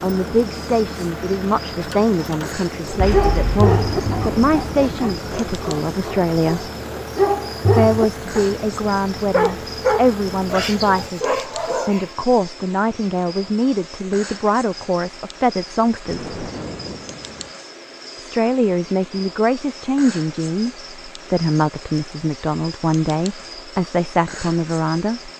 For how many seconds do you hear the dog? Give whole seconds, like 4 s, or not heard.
9 s.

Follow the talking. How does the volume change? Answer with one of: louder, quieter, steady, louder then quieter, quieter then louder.
steady.